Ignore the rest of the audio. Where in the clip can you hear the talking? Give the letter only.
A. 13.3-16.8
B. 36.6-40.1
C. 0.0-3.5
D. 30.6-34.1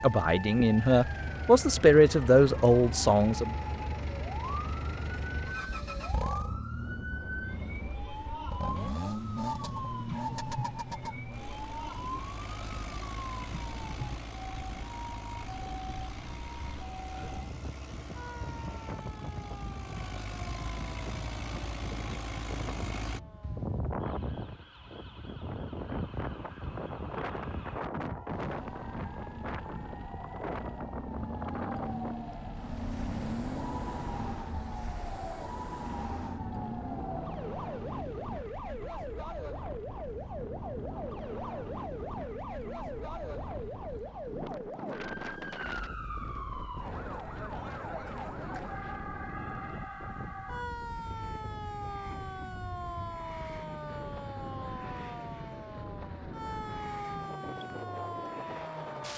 C.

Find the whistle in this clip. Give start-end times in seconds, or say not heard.
not heard.